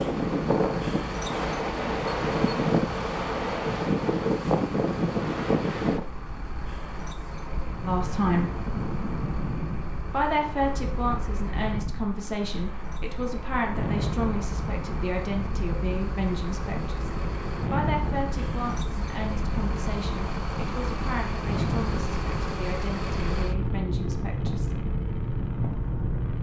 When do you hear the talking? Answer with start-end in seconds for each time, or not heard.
7.8-8.6, 10.1-24.9.